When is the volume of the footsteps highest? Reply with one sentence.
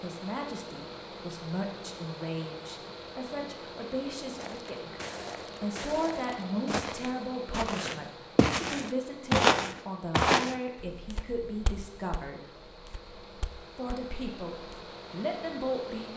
The loudest moment of the footsteps is at 9 seconds.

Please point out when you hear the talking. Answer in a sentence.
You can hear the talking from 0.0 to 12.4 s and from 13.8 to 16.1 s.